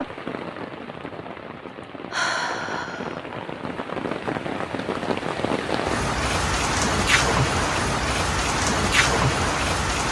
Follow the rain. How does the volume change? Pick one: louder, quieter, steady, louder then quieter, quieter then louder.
louder.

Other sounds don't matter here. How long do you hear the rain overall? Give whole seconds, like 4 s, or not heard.
10 s.